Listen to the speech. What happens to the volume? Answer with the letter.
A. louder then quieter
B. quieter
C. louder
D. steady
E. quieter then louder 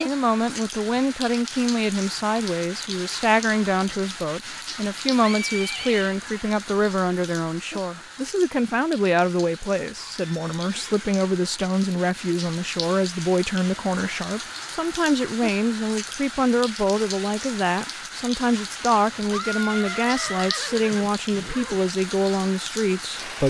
D.